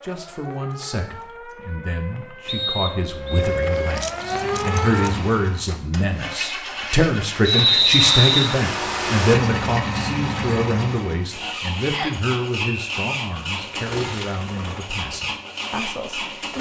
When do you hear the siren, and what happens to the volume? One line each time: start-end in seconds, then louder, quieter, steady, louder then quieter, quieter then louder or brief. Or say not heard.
0.0-5.2 louder.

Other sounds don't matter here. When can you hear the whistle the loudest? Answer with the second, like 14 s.
8 s.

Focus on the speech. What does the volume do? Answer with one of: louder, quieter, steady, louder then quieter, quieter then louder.
louder then quieter.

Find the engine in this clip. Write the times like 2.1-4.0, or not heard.
4.0-16.5.